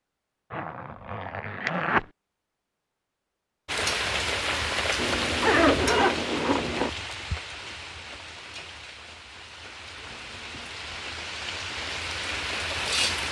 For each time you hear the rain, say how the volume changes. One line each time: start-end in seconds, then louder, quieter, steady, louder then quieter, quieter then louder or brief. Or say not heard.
3.6-13.2 quieter then louder.